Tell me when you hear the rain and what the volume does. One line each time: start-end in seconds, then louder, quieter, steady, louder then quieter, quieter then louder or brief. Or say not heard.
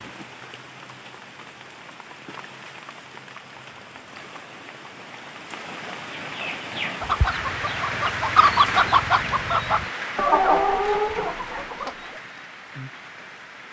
0.0-13.6 louder then quieter.